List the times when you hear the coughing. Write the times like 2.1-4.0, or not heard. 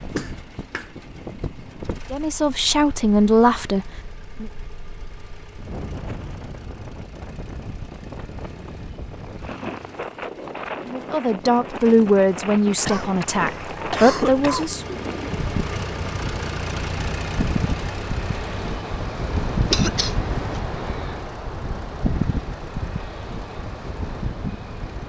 0.1-0.9, 12.8-14.8, 19.7-20.6.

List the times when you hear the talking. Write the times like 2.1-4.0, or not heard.
2.1-4.5, 10.8-14.9.